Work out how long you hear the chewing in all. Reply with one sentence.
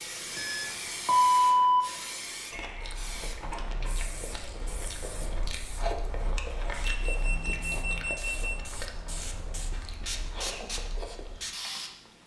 You can hear the chewing for 9 seconds altogether.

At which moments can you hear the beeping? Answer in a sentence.
The beeping can be heard from 0.3 to 1.9 s and from 7.0 to 8.6 s.